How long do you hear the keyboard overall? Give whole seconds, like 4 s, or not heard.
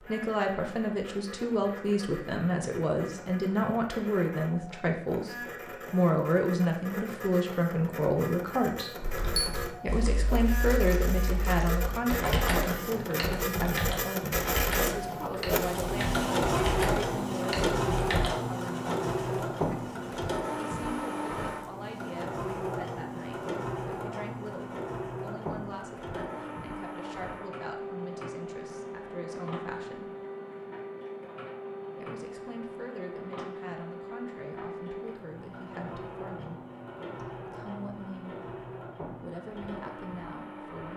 9 s.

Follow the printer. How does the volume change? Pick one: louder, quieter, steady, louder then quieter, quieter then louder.
louder then quieter.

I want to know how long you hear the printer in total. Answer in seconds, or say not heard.
41 s.